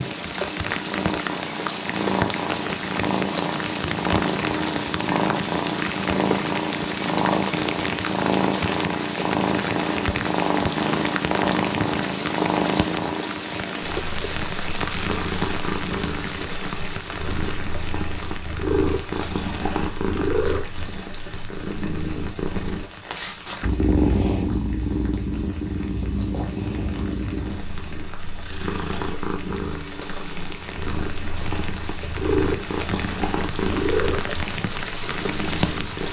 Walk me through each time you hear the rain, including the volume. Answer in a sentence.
You can hear the rain from 0.0 to 36.0 s, getting quieter then louder.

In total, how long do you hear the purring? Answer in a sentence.
The purring can be heard for 36 seconds in total.